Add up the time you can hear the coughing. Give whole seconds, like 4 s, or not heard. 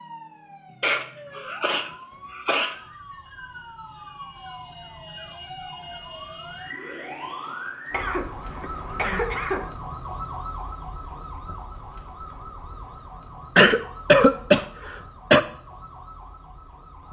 6 s.